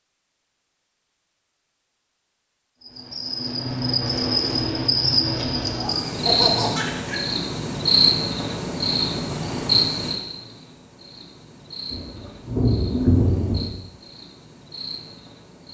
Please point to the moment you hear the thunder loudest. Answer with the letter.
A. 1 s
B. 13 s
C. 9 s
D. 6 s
B.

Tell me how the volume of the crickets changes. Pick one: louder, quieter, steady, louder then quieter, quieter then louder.
quieter.